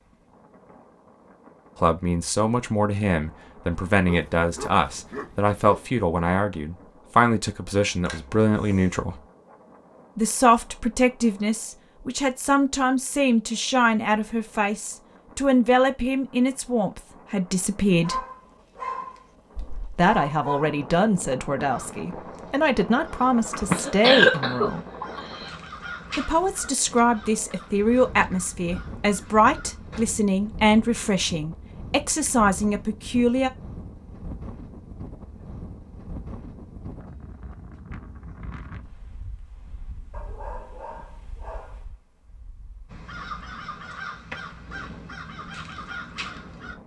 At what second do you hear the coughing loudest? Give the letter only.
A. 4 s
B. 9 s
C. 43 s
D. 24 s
D.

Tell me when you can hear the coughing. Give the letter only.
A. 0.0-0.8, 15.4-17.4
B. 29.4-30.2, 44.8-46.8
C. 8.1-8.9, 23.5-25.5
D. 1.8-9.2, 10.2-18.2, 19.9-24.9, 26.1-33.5
C.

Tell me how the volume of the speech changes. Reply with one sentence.
The volume of the speech stays about the same.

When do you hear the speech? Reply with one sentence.
You can hear the speech from 1.8 to 9.2 s, from 10.2 to 18.2 s, from 19.9 to 24.9 s and from 26.1 to 33.5 s.